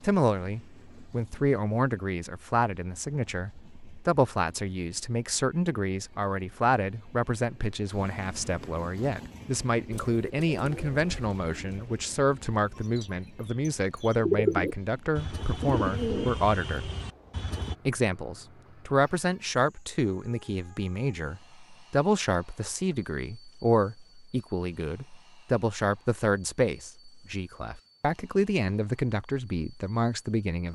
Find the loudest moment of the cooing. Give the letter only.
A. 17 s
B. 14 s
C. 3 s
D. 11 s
B.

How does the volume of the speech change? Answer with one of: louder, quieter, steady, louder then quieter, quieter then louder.
steady.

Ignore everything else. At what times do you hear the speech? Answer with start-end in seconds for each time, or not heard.
0.0-16.9, 17.9-30.7.